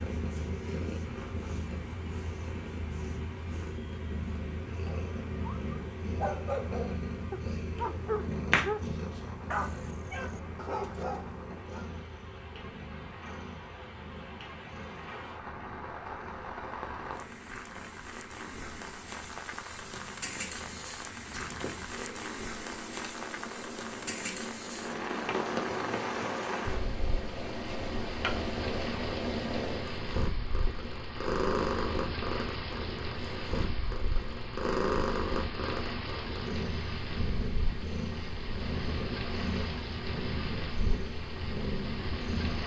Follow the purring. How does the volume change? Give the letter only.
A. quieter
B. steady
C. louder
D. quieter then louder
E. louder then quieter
D.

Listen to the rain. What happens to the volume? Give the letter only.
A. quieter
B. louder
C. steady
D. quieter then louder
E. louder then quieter
B.